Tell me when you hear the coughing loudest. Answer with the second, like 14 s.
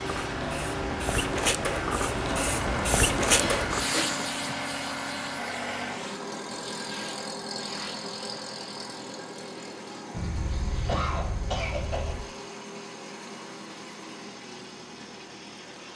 11 s.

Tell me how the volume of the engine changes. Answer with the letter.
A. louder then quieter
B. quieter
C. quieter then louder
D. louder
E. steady
B.